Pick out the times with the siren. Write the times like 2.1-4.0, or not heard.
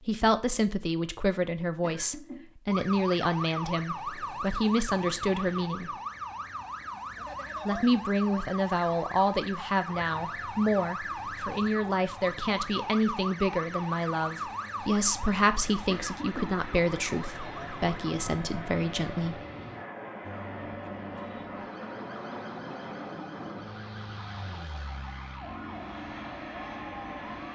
2.6-18.1, 20.2-27.2.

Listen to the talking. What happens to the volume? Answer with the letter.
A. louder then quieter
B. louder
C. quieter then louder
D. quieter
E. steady
E.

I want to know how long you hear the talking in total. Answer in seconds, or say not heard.
18 s.